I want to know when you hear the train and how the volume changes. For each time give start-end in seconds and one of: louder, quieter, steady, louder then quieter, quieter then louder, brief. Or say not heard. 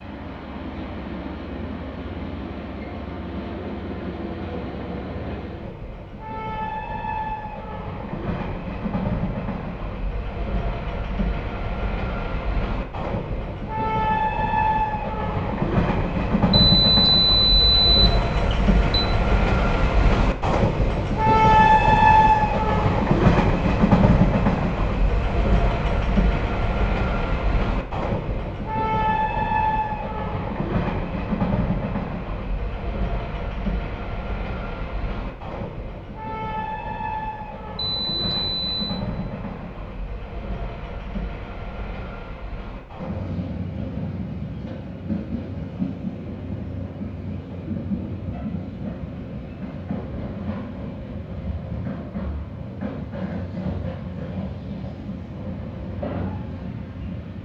0.0-57.4 louder then quieter.